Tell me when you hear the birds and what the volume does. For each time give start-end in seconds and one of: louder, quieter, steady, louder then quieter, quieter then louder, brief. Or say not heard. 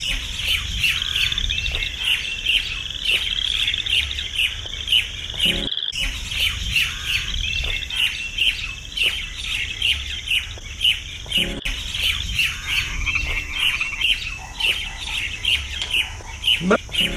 0.0-17.1 steady.